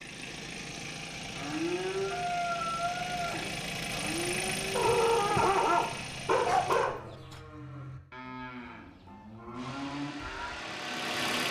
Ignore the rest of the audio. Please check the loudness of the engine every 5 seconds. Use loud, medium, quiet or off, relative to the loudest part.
loud, medium, loud.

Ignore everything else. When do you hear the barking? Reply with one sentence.
You can hear the barking from 4.7 to 7.4 s.